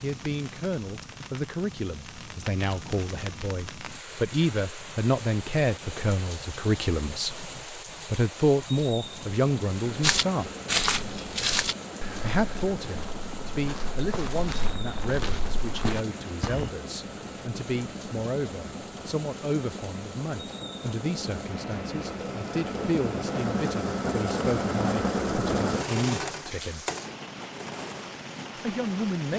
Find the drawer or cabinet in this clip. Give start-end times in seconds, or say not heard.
not heard.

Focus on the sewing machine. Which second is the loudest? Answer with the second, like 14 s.
25 s.